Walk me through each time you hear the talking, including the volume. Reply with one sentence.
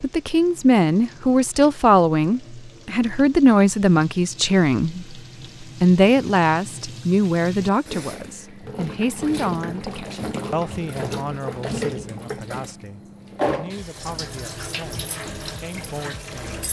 You can hear the talking from 0.0 to 16.6 s, getting quieter.